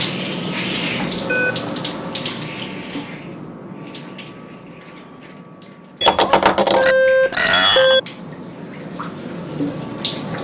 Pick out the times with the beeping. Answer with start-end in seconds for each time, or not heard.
1.2-2.3, 6.0-8.0.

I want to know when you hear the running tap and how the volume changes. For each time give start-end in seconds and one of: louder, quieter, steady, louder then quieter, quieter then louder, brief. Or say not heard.
0.0-10.3 quieter then louder.